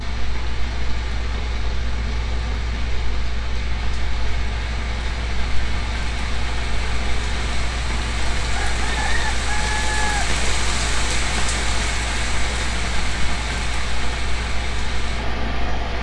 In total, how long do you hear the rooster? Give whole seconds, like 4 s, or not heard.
2 s.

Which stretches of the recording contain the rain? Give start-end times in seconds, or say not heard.
0.0-15.9.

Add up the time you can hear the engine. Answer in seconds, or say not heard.
16 s.